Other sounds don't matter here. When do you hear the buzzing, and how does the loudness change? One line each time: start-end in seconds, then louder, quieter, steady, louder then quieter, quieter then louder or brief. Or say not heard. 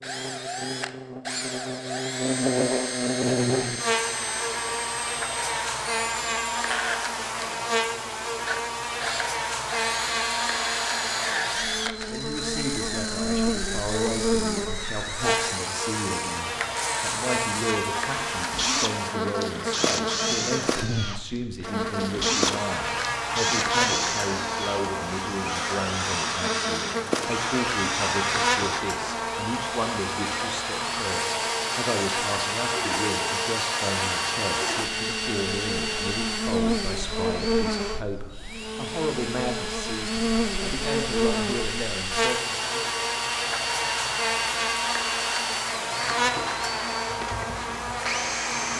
0.0-48.7 steady.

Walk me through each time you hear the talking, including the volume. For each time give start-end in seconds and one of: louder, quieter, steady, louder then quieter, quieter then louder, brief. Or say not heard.
12.1-42.9 steady.